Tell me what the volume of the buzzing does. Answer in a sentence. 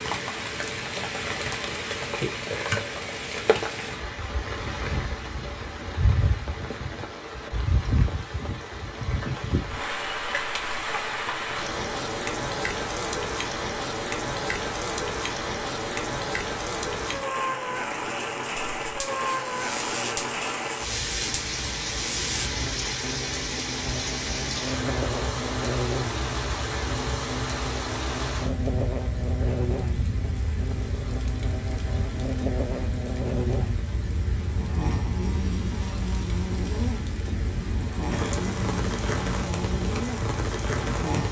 The volume of the buzzing stays about the same.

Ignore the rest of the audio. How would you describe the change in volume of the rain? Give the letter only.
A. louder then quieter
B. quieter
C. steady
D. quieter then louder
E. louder
C.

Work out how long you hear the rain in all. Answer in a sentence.
You can hear the rain for 41 seconds altogether.